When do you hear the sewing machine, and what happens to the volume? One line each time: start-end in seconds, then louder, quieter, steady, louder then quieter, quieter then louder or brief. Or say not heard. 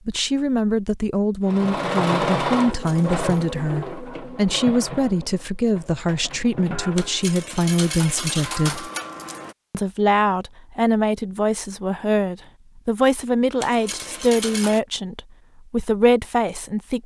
1.4-7.2 quieter.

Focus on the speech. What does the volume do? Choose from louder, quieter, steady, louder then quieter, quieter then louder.
steady.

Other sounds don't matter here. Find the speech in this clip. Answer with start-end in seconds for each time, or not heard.
0.1-8.9, 9.7-17.0.